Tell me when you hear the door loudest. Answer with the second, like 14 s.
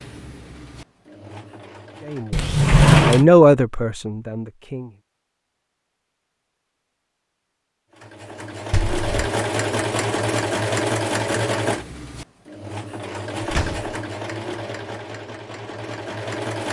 3 s.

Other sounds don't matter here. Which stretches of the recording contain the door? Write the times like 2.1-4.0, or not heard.
2.3-3.2, 8.7-9.2, 13.4-13.9.